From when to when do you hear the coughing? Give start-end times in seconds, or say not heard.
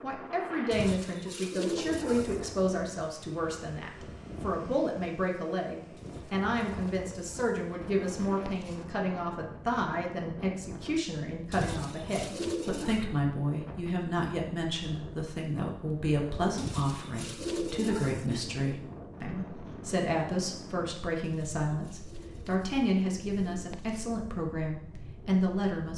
not heard.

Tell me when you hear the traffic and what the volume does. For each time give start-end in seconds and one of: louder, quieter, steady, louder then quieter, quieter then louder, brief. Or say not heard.
not heard.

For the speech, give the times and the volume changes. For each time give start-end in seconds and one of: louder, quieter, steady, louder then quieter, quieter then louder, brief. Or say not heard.
0.0-25.9 steady.